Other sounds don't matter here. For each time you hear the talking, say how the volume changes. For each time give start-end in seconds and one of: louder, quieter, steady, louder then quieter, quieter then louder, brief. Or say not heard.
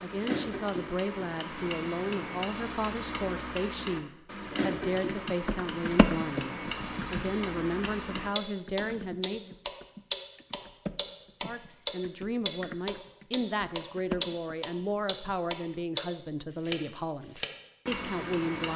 0.0-9.6 steady
11.4-18.7 steady.